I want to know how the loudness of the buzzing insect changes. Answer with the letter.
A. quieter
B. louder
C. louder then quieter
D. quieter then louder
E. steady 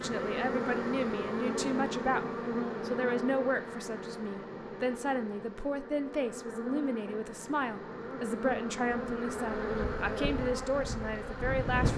D.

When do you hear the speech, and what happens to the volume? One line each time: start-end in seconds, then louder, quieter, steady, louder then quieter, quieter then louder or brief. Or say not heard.
0.0-11.9 steady.